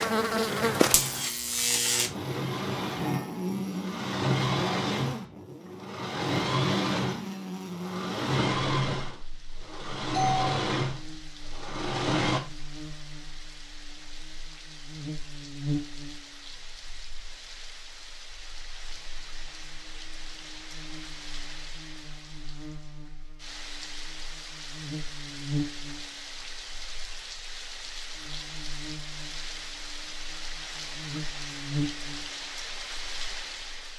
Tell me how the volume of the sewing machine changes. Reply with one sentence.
The volume of the sewing machine goes up.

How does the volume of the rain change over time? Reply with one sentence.
The volume of the rain goes up.